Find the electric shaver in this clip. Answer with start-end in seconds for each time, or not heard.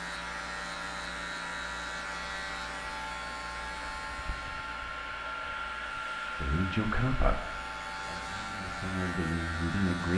0.0-10.1.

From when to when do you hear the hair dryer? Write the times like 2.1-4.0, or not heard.
0.0-10.1.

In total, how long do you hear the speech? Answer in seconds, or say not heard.
4 s.